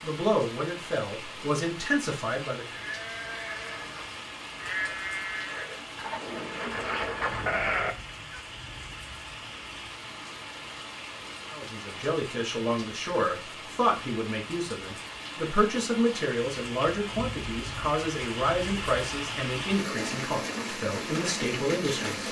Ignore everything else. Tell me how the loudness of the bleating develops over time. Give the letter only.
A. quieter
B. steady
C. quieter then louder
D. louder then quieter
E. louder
E.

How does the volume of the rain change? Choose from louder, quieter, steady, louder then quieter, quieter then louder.
louder.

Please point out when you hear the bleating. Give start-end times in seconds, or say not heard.
2.6-8.4.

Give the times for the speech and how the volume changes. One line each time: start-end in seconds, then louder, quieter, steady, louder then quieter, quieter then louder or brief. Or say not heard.
0.0-2.6 brief
11.5-22.2 steady.